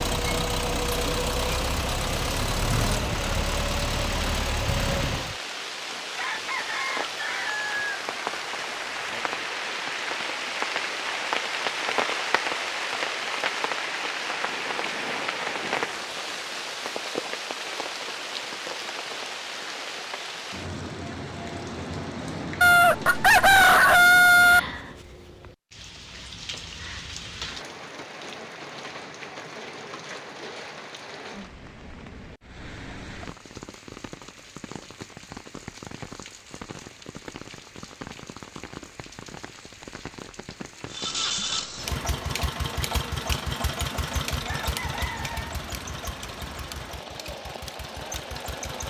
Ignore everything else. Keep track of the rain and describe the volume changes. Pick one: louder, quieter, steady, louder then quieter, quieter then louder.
quieter.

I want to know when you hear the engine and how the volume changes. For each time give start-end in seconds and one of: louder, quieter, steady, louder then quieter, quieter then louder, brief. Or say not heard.
0.0-5.3 steady
40.9-48.8 quieter.